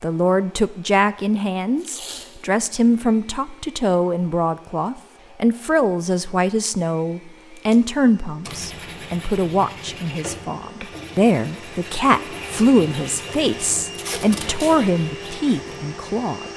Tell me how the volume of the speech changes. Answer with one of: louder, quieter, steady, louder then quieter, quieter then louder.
steady.